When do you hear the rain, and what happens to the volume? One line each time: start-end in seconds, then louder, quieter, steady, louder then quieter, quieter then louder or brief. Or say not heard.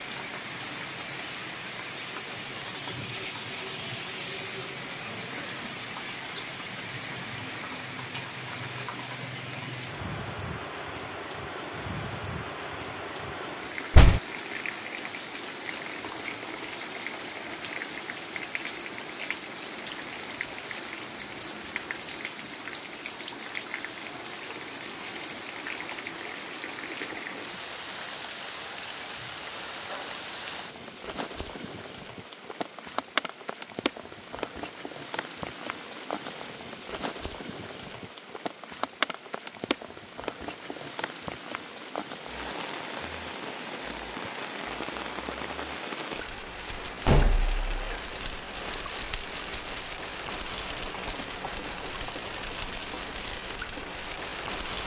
0.0-54.8 steady.